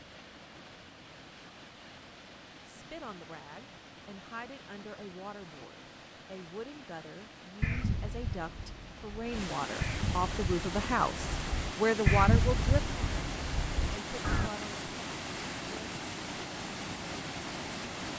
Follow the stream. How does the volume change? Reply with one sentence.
The volume of the stream goes up.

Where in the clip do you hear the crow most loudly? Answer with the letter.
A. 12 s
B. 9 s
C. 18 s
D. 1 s
A.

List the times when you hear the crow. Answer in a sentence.
You can hear the crow from 7.6 to 14.5 s.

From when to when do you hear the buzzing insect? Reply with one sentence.
The buzzing insect can't be heard in this clip.